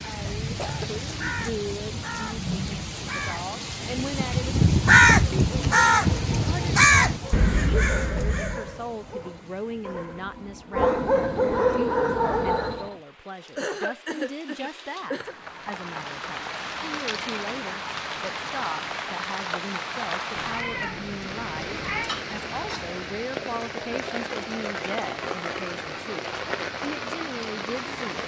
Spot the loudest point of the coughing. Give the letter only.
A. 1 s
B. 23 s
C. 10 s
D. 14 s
D.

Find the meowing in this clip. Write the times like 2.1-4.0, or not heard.
20.4-22.1.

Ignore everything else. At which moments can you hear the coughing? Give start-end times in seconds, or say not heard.
0.2-1.0, 13.6-15.3, 22.1-22.9.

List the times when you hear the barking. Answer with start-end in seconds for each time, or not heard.
5.5-12.9.